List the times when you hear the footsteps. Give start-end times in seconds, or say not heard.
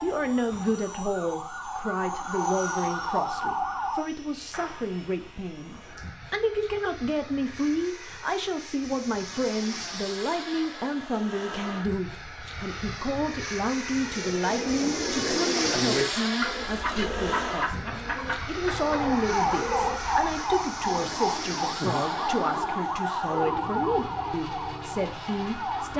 not heard.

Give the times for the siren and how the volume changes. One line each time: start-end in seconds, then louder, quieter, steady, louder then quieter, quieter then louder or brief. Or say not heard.
0.0-4.1 louder
18.6-25.9 quieter.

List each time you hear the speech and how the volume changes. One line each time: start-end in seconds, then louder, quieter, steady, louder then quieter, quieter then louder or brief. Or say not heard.
0.0-25.9 steady.